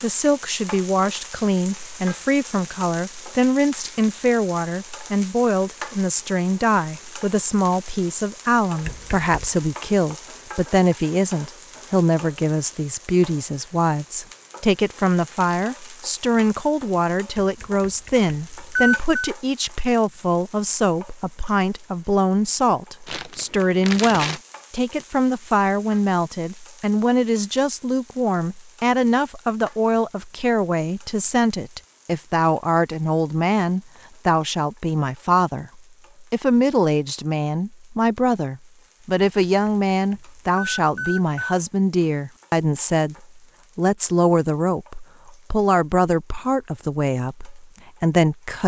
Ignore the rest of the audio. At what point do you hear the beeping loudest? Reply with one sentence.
The loudest moment of the beeping is at 19 seconds.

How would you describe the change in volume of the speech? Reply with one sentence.
The volume of the speech stays about the same.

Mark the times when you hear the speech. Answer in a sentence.
You can hear the speech from 0.0 to 48.6 s.